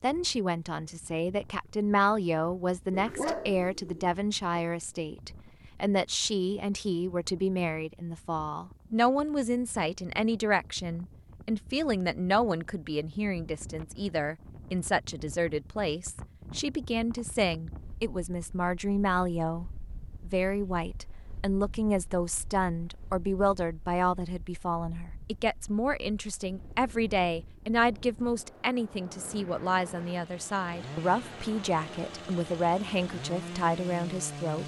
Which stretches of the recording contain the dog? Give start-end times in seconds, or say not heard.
2.9-4.6.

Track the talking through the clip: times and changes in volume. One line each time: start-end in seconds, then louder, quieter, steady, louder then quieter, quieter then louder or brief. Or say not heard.
0.0-34.6 steady.